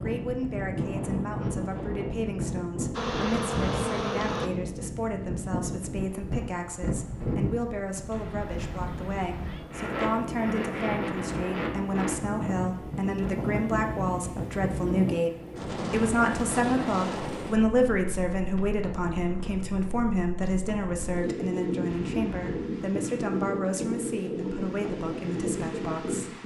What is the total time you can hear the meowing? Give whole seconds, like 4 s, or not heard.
2 s.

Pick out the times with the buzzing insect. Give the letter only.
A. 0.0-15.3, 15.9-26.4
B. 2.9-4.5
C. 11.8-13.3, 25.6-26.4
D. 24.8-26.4
B.